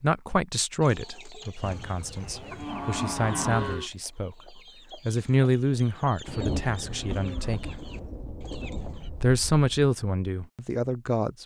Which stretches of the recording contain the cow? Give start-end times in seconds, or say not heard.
1.6-3.9, 6.6-8.2.